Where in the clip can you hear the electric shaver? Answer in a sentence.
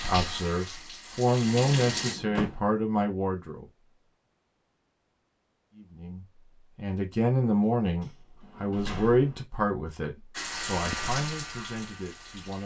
The electric shaver can be heard from 10.6 to 12.6 s.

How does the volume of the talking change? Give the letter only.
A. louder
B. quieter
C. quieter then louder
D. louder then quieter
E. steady
B.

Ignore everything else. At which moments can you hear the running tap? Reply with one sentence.
The running tap can be heard from 0.0 to 2.1 s and from 10.3 to 12.6 s.